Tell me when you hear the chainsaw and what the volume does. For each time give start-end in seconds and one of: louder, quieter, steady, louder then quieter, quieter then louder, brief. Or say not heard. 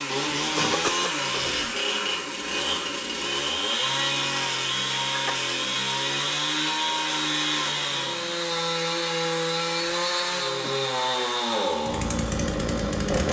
0.0-13.2 steady.